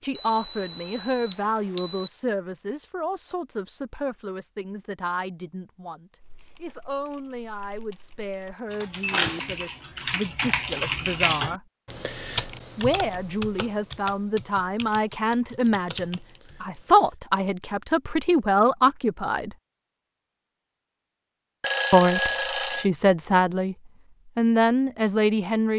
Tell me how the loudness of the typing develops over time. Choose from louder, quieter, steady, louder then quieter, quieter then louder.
louder then quieter.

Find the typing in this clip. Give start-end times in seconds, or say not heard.
6.2-17.1.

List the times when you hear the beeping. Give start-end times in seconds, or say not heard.
0.1-2.1, 9.0-9.7, 21.6-22.9.